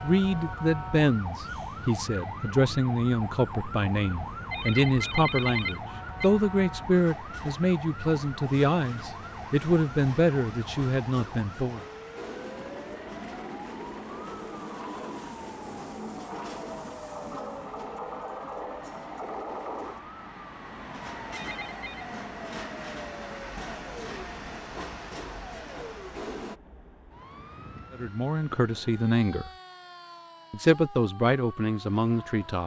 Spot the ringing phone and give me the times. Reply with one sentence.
The ringing phone can be heard from 4.4 to 6.3 s and from 21.2 to 22.1 s.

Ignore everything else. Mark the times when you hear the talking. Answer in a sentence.
The talking can be heard from 0.0 to 11.8 s, from 27.9 to 29.5 s and from 30.5 to 32.6 s.